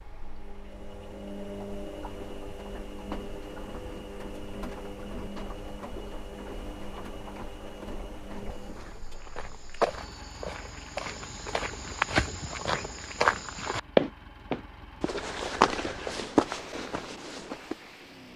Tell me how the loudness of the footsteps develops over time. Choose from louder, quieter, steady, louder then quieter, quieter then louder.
louder then quieter.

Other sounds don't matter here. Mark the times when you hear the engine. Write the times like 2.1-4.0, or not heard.
0.0-18.3.